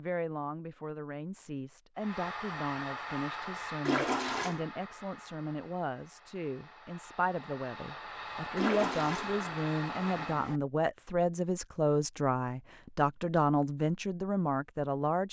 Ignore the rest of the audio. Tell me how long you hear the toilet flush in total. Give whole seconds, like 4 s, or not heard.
3 s.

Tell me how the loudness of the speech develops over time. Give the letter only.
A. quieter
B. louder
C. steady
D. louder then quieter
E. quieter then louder
B.